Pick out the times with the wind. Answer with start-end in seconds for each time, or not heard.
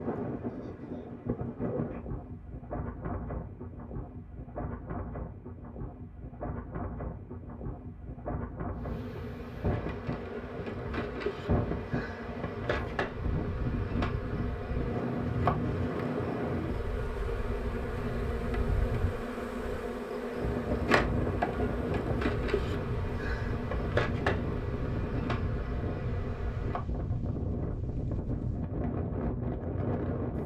0.0-30.4.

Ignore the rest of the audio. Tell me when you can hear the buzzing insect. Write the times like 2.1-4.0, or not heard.
8.8-26.9.